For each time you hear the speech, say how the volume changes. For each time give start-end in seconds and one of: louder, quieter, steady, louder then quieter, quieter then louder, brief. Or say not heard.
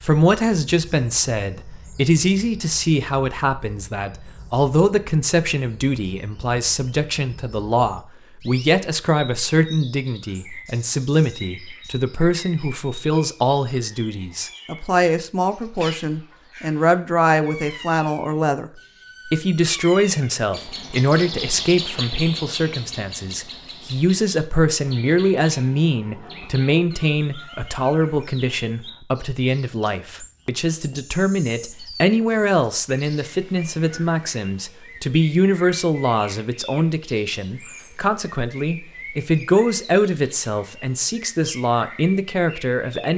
0.0-43.1 steady.